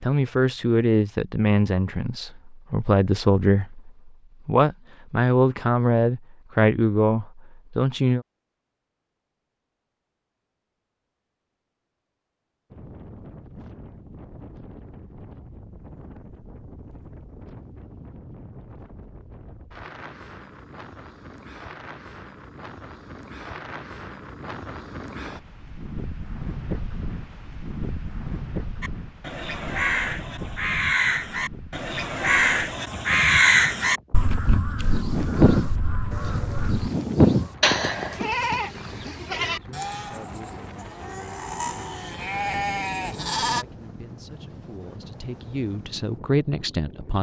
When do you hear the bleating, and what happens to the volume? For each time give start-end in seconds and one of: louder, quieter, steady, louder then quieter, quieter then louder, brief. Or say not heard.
34.8-43.6 quieter then louder.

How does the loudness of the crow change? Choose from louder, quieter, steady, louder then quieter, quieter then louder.
louder then quieter.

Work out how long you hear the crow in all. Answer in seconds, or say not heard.
8 s.